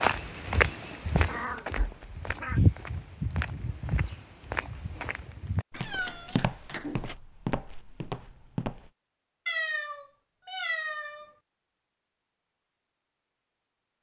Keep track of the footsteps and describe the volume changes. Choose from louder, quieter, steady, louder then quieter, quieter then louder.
quieter.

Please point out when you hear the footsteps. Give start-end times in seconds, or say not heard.
0.0-8.9.